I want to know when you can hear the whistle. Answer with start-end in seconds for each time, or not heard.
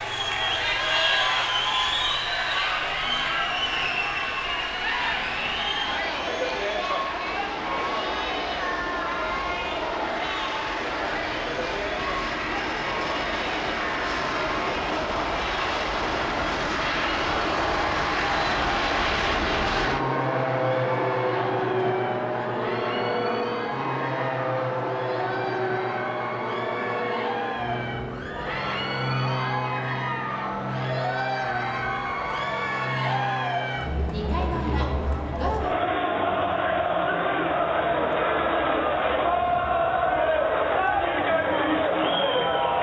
not heard.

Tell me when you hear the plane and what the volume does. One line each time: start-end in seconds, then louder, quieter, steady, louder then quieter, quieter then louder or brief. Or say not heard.
0.0-42.7 louder then quieter.